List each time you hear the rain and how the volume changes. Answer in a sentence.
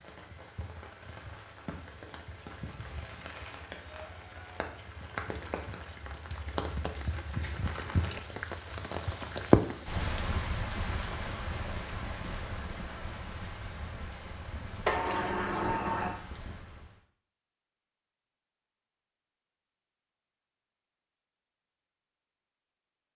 The rain can be heard from 0.0 to 17.0 s, getting louder then quieter.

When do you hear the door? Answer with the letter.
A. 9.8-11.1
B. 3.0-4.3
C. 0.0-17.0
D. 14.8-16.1
D.